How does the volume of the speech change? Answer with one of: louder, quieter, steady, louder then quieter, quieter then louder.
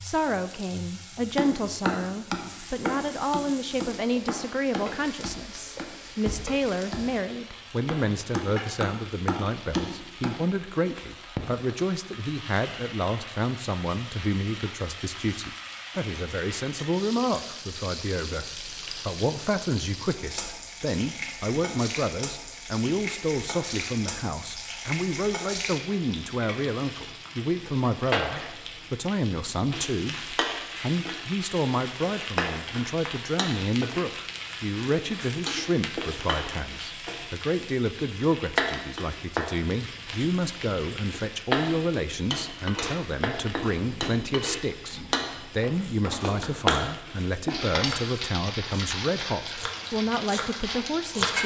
steady.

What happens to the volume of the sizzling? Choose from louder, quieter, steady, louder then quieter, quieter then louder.
louder.